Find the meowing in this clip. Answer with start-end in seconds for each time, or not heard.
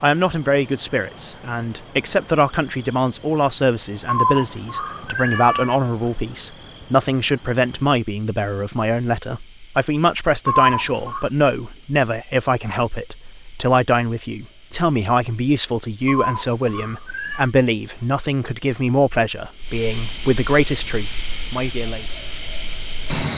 4.0-5.8, 10.4-11.2, 16.1-17.5.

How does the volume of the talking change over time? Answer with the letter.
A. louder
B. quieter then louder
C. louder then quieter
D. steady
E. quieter
D.